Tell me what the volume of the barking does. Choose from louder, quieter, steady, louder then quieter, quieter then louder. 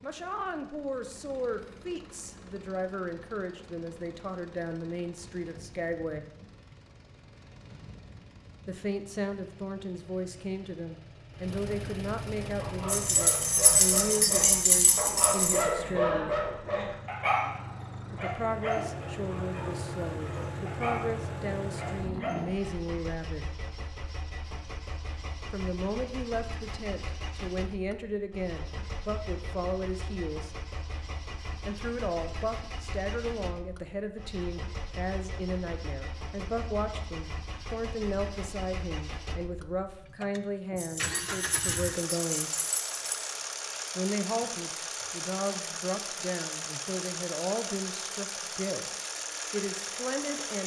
louder then quieter.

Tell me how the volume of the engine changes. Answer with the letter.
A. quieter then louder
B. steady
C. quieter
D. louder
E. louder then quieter
D.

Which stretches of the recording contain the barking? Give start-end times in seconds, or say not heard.
12.4-22.9.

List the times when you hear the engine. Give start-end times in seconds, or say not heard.
0.0-50.6.